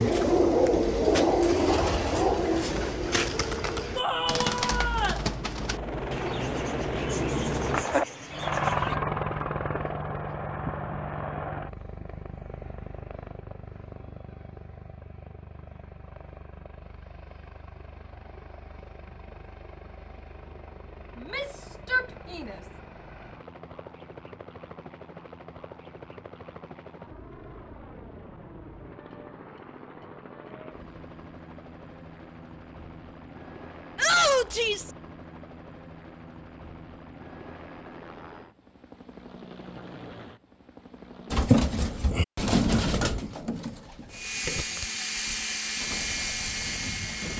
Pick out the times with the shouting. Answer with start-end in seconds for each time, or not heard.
4.0-5.2, 21.1-22.6, 34.0-34.9.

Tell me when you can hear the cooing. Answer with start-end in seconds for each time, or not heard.
0.0-9.0, 41.3-47.3.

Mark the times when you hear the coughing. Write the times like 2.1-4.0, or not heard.
not heard.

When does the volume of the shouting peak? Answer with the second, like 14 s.
34 s.